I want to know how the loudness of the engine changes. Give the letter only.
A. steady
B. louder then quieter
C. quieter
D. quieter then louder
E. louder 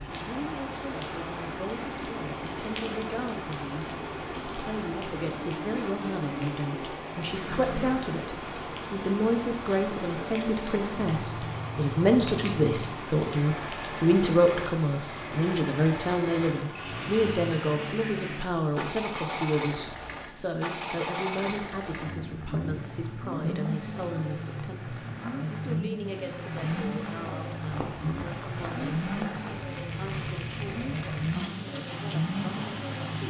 E.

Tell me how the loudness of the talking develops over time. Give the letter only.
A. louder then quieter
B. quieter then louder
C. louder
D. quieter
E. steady
A.